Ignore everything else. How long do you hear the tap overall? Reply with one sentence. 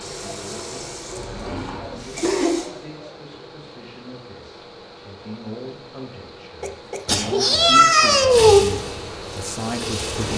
You can hear the tap for 5 seconds altogether.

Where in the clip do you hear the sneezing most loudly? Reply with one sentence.
The volume of the sneezing peaks at 8 seconds.